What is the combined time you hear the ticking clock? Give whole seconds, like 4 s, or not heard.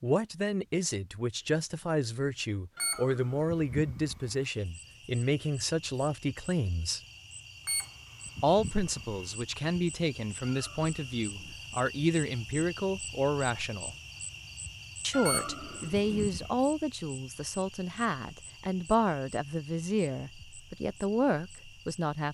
not heard.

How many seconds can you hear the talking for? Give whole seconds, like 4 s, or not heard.
20 s.